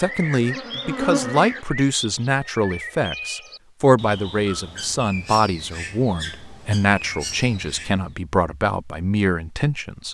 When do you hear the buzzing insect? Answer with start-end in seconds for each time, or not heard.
0.0-1.6.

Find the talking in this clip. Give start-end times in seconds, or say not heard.
0.0-10.1.